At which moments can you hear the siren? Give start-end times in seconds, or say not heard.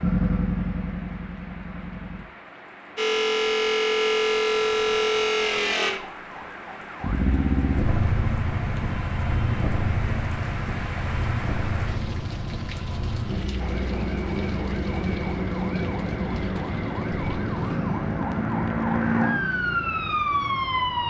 3.0-7.2, 13.6-21.0.